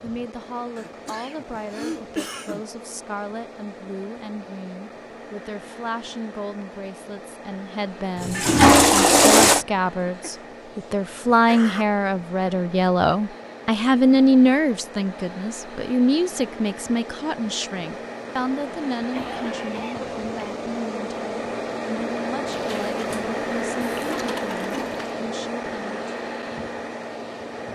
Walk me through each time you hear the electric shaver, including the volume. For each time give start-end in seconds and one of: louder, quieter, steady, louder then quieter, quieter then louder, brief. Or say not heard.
not heard.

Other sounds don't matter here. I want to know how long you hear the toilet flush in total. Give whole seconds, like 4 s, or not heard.
4 s.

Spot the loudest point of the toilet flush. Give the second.
9 s.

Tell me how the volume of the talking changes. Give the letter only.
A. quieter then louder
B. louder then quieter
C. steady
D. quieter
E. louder
B.